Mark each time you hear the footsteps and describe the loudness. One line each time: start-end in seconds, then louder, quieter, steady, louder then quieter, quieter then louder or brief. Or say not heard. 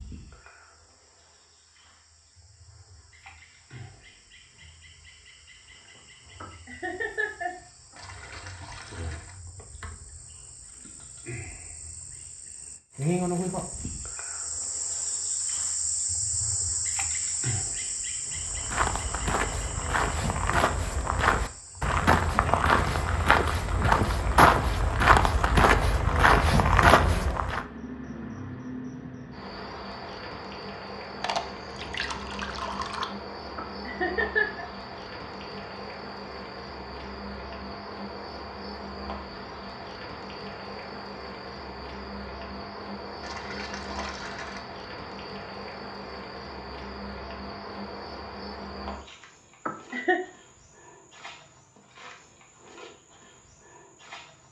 18.4-27.6 louder.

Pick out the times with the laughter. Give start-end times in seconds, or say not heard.
6.4-8.4, 33.5-34.6, 49.6-50.2.